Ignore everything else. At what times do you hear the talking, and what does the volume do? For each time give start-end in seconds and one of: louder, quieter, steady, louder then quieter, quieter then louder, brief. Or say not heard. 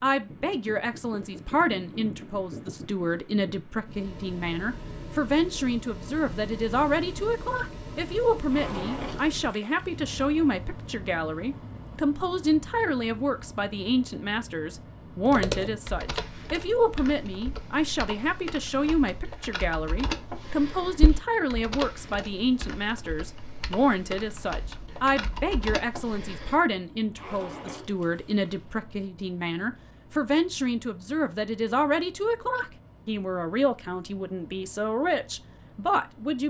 0.0-36.4 steady.